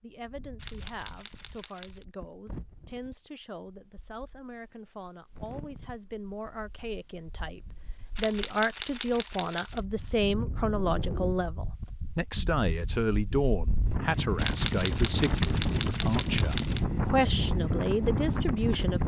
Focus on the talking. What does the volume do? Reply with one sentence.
The loudness of the talking goes up.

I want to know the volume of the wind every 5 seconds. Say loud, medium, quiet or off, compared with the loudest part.
quiet, quiet, medium, loud.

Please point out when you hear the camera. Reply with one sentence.
The camera can be heard from 0.6 to 2.0 s, from 8.2 to 9.8 s and from 14.3 to 16.8 s.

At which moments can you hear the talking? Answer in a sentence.
The talking can be heard from 0.0 to 19.0 s.